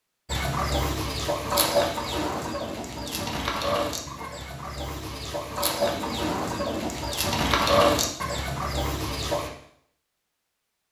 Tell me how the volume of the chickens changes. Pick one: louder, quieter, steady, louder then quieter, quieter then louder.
quieter then louder.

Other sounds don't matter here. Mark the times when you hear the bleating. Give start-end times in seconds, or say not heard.
2.5-3.3, 5.8-6.9.